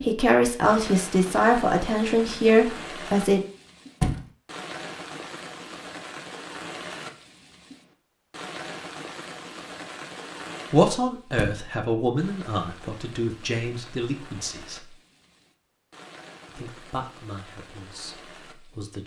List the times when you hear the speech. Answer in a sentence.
The speech can be heard from 0.0 to 3.4 s, from 10.7 to 14.9 s and from 16.4 to 19.0 s.